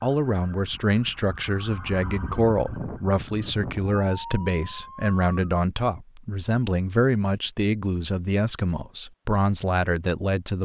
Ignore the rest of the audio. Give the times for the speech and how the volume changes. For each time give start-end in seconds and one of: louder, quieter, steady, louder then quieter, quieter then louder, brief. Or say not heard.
0.0-10.5 steady.